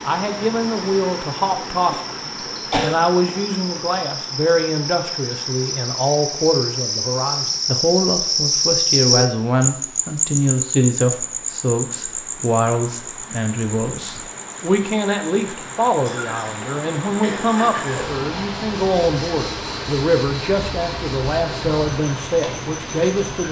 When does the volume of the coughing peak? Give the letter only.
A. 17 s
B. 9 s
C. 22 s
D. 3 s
D.